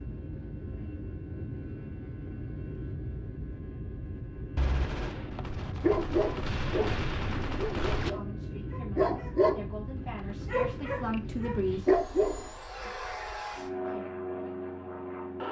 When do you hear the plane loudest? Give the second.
14 s.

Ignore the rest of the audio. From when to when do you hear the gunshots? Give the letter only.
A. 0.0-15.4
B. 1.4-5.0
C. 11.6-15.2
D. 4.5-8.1
D.